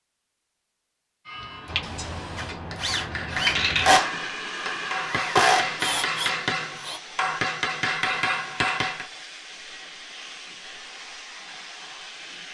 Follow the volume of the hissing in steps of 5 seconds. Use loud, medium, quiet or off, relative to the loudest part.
loud, medium, medium.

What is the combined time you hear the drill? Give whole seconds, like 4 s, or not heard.
5 s.